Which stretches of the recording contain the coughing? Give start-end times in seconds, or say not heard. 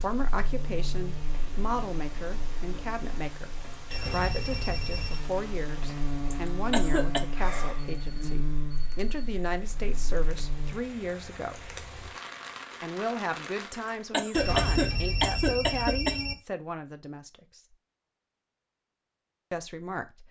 6.3-7.2, 13.7-16.1.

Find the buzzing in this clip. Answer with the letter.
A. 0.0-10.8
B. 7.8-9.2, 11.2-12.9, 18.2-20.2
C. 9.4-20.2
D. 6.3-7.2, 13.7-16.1
A.